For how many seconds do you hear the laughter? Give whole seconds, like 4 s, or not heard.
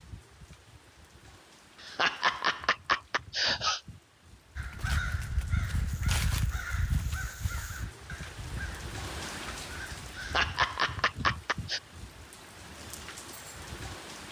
4 s.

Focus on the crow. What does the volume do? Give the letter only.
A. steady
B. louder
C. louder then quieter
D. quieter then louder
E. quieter
E.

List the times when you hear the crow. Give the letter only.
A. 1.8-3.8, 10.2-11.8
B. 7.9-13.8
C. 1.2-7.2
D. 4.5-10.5
D.